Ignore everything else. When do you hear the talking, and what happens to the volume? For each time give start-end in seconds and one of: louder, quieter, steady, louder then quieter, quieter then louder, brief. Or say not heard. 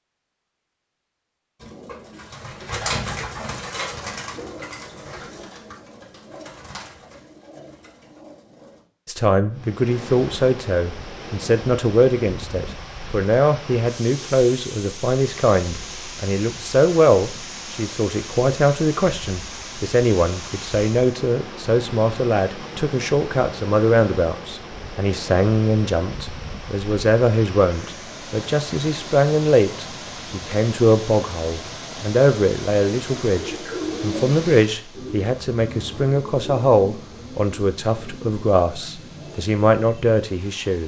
9.1-40.8 steady.